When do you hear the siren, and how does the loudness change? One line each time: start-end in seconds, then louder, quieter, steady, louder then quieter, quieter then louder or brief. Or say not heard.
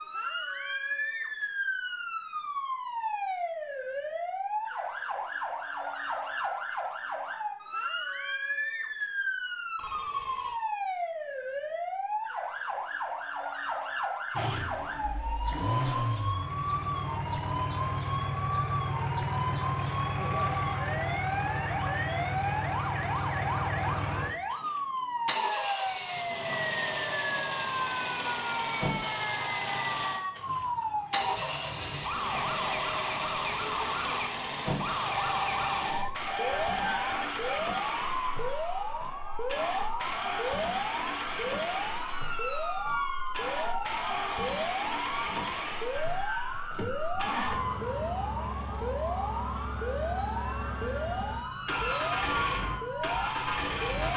0.0-54.1 steady.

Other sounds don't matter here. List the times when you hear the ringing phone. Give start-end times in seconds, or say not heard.
9.8-10.6, 35.1-37.5.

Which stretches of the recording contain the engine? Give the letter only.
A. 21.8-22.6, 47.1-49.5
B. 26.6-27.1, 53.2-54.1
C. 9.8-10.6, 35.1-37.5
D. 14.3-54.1
D.